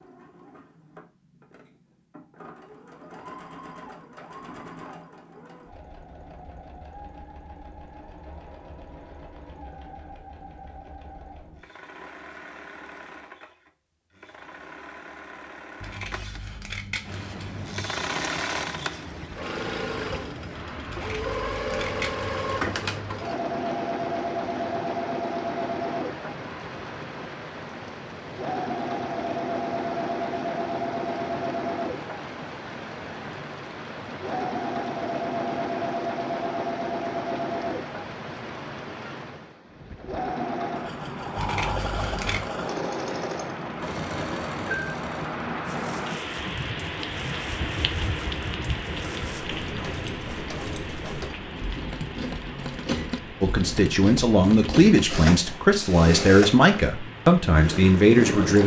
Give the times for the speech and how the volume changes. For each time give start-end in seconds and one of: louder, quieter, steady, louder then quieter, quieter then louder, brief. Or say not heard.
53.4-58.6 steady.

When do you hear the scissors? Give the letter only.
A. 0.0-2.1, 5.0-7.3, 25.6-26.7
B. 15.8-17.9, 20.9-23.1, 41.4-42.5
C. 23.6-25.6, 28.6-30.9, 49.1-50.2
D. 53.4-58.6
B.